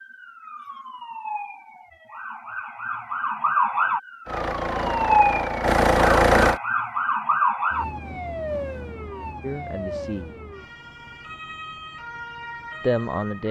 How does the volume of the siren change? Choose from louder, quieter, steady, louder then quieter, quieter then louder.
louder then quieter.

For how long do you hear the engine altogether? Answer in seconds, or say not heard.
2 s.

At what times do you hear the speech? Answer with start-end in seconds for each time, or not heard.
9.4-10.3, 12.8-13.4.